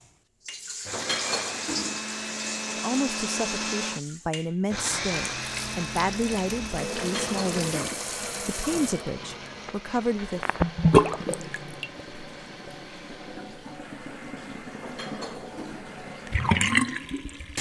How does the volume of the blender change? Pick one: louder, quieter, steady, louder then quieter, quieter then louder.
quieter.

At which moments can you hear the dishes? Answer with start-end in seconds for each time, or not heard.
0.9-2.0, 7.0-8.1, 14.8-15.9.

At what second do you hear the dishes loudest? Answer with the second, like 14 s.
1 s.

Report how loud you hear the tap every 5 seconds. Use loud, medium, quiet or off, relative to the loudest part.
medium, medium, loud, loud.